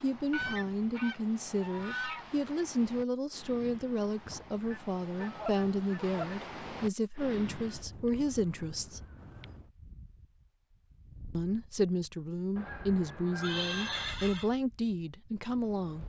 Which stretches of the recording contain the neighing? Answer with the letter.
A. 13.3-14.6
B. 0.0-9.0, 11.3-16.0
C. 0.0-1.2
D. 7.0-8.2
A.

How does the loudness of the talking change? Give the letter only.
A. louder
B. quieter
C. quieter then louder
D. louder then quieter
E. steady
E.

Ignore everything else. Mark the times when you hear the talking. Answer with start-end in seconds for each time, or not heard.
0.0-9.0, 11.3-16.0.